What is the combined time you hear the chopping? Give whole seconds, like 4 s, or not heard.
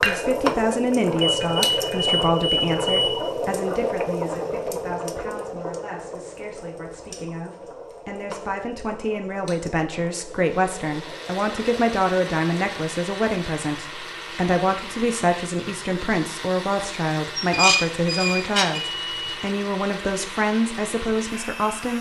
not heard.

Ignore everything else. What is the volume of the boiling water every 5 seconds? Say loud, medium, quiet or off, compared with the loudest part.
loud, medium, quiet, off, off.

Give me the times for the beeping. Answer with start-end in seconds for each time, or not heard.
1.2-3.2, 18.9-19.4.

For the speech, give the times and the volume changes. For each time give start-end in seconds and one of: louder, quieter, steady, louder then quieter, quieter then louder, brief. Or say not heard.
0.0-21.9 quieter then louder.